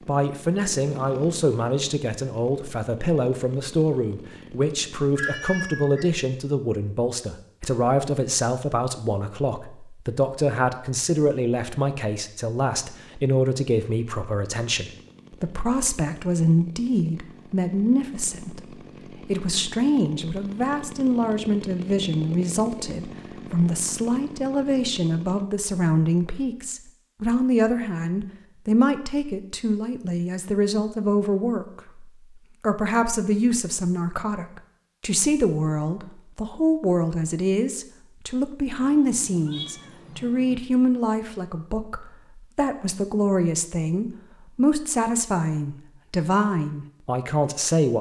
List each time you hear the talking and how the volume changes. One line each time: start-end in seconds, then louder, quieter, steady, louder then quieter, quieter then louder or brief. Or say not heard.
0.1-47.9 steady.